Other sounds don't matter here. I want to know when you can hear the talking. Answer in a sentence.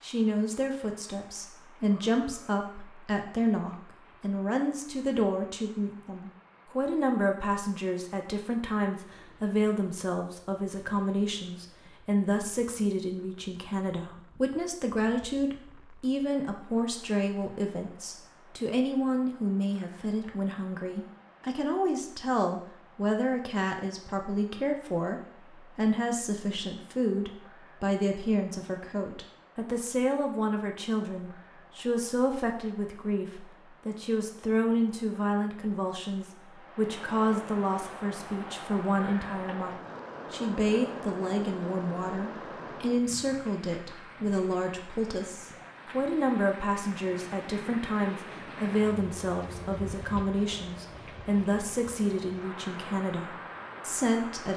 The talking can be heard from 0.0 to 54.5 s.